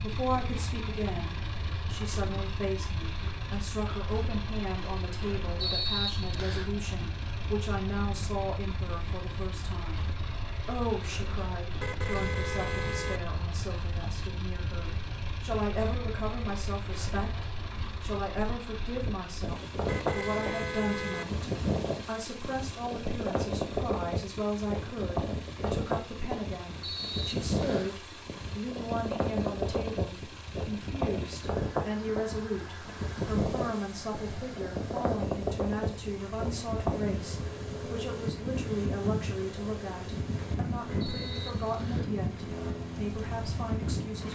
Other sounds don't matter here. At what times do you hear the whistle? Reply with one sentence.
You can hear the whistle from 5.6 to 6.8 s, from 26.8 to 27.9 s and from 41.0 to 42.1 s.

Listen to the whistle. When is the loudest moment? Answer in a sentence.
The volume of the whistle peaks at 6 seconds.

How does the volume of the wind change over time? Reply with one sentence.
The loudness of the wind goes up.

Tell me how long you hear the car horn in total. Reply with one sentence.
The car horn can be heard for 4 seconds in total.